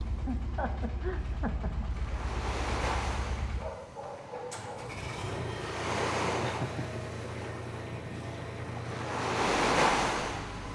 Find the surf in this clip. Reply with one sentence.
You can hear the surf from 0.0 to 10.7 s.